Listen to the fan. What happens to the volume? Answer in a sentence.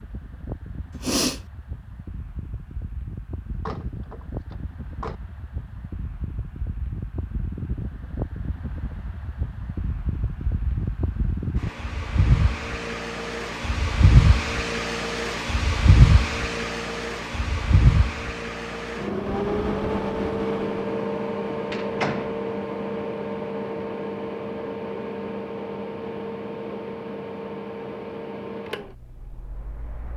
The loudness of the fan goes up, then down.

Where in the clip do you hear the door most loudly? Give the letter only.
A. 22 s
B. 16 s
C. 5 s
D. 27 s
A.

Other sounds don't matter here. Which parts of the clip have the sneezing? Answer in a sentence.
You can hear the sneezing from 0.9 to 1.4 s.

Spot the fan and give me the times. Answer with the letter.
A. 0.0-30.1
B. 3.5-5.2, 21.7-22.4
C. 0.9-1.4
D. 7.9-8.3
A.